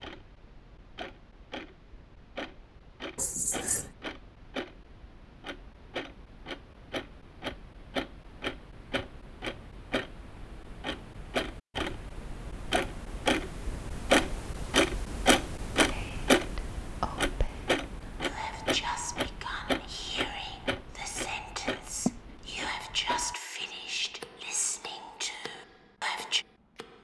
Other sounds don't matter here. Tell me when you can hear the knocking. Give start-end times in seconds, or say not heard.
not heard.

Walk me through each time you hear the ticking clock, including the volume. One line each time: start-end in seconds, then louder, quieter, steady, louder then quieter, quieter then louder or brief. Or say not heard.
0.0-27.0 louder then quieter.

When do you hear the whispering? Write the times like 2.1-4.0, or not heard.
15.9-26.4.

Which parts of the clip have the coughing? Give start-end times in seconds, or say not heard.
3.1-3.9, 22.1-22.5.